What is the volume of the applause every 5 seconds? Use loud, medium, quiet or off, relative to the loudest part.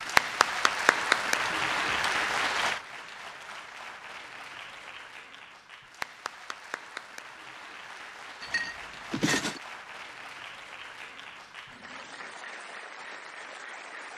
loud, quiet, quiet.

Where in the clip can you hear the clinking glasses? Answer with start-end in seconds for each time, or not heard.
1.4-2.4, 8.4-9.6.